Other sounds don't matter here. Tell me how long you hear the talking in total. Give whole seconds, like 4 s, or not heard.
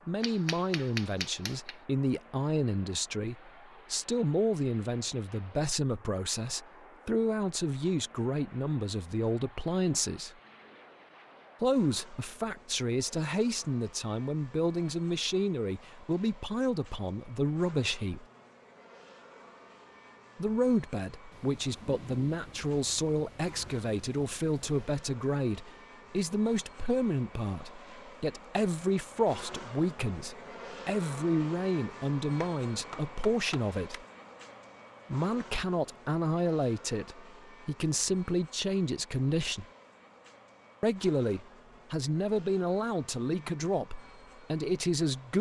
40 s.